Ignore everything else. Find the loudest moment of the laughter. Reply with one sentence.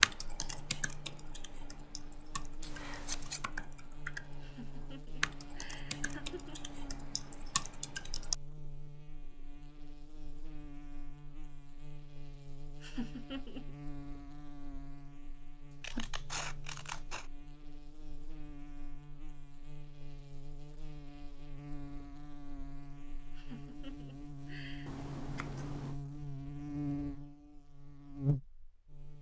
The volume of the laughter peaks at 13 seconds.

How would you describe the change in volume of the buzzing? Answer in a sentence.
The volume of the buzzing goes up.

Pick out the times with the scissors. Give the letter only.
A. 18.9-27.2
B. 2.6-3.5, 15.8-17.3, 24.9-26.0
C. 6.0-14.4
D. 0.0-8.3
B.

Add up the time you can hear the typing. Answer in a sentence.
The typing can be heard for 8 seconds in total.